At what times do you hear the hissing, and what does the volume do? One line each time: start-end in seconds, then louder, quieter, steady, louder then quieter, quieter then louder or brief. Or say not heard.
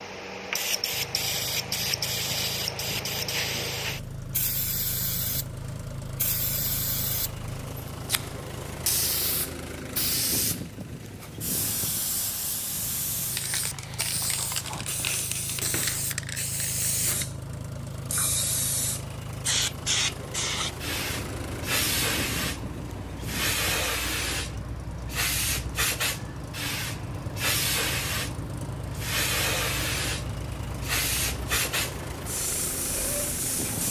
0.0-33.8 steady.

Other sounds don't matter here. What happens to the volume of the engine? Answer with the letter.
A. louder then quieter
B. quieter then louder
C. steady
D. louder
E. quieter
C.